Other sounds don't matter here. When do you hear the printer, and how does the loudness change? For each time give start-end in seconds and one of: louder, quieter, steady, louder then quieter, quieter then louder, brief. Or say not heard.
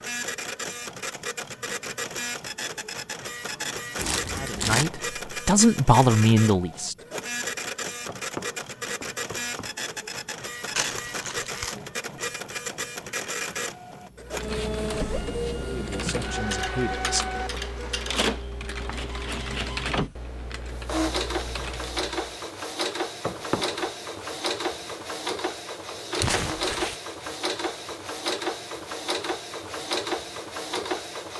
0.0-31.3 steady.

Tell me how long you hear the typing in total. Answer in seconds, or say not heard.
8 s.